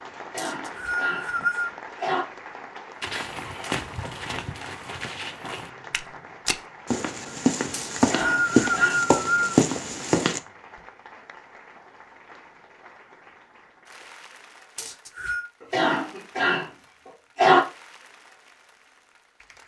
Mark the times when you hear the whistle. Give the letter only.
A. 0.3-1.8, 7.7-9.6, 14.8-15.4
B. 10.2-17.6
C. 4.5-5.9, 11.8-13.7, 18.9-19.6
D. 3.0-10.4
A.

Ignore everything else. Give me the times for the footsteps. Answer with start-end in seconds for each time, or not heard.
3.0-10.4.